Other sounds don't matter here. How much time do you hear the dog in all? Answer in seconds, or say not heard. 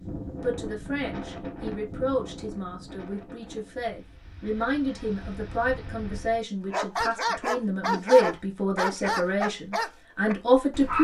4 s.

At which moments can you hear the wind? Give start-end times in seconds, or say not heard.
0.0-6.5.